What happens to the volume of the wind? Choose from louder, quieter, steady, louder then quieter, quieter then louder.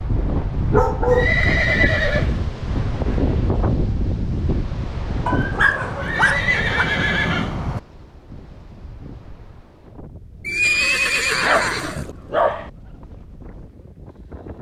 quieter.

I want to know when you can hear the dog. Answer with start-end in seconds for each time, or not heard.
0.7-1.4, 5.2-6.8, 11.3-12.7.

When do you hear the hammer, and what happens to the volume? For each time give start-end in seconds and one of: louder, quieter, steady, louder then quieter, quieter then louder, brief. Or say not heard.
not heard.